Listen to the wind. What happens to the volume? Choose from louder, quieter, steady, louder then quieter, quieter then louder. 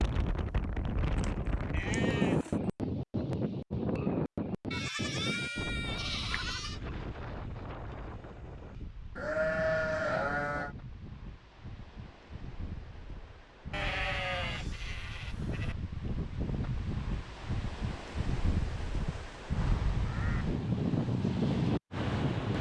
quieter then louder.